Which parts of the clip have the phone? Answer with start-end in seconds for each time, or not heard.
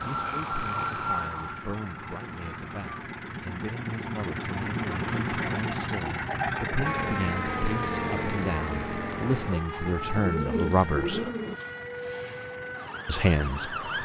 not heard.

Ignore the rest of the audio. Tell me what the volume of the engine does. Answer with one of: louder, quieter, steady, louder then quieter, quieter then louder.
louder then quieter.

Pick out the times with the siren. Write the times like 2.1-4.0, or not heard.
0.0-3.0, 6.8-14.0.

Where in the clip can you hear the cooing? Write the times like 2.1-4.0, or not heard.
9.8-11.6.